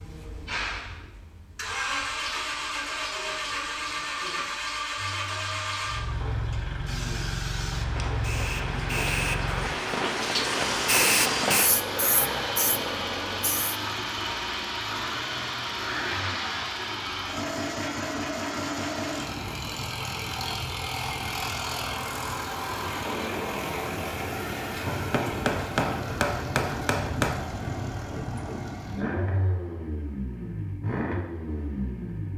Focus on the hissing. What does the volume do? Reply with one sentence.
The volume of the hissing goes up, then down.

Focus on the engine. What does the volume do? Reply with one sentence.
The loudness of the engine stays about the same.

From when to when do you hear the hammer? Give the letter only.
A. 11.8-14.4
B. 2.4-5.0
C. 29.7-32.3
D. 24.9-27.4
D.